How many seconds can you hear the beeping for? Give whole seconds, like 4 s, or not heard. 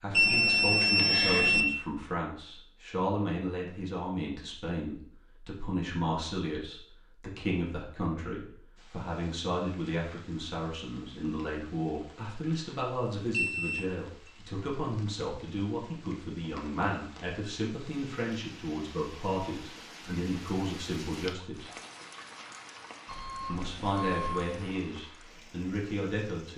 4 s.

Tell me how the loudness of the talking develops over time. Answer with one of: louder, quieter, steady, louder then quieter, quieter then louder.
steady.